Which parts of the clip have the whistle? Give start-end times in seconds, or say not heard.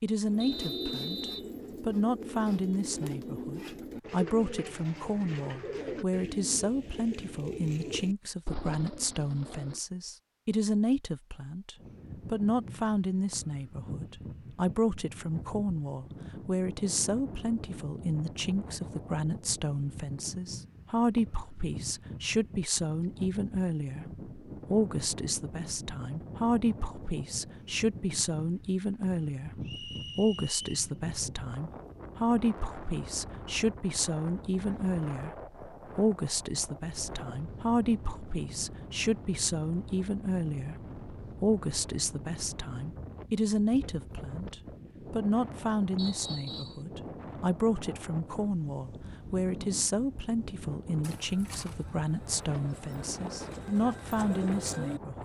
0.4-1.5, 29.6-30.9, 46.0-46.8.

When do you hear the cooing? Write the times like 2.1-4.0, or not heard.
0.2-9.8, 51.0-55.0.